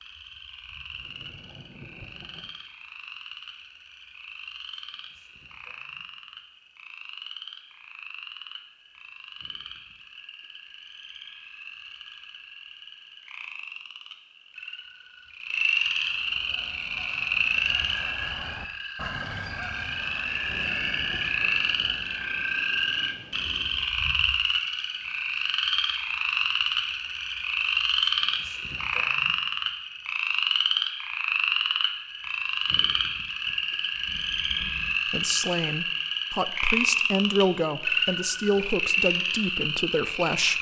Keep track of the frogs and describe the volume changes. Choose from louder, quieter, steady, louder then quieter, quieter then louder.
louder.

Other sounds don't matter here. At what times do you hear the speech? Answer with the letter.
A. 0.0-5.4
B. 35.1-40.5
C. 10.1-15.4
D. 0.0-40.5
B.